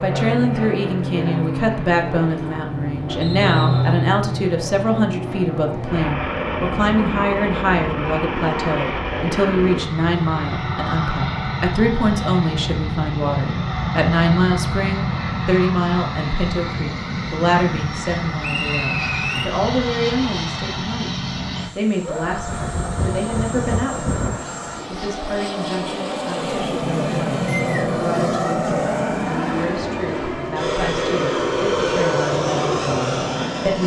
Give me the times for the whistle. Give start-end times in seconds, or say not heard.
3.2-4.0, 18.4-19.5, 27.5-28.1.